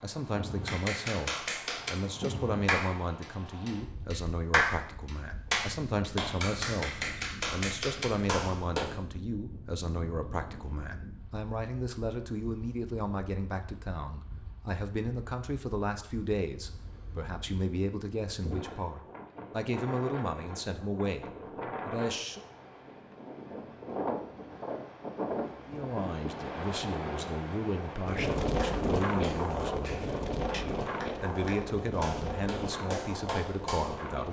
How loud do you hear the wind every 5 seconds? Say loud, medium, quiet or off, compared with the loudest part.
medium, quiet, quiet, medium, medium, loud, loud.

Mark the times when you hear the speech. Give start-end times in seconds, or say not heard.
0.0-22.4, 25.6-34.2.